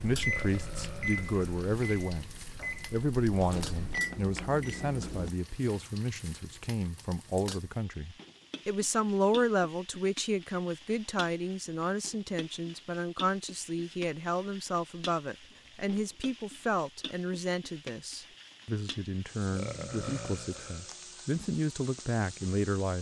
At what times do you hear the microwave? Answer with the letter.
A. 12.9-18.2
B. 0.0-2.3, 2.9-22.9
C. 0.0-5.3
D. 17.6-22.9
C.